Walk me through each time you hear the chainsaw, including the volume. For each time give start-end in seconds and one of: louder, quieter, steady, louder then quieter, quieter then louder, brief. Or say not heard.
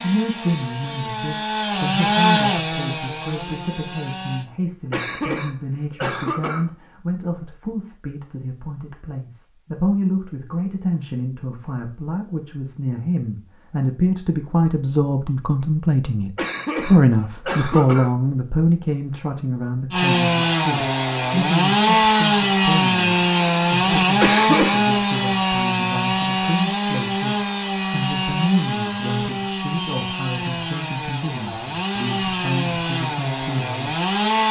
0.0-4.5 louder then quieter
19.9-34.4 quieter.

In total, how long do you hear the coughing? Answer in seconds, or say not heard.
4 s.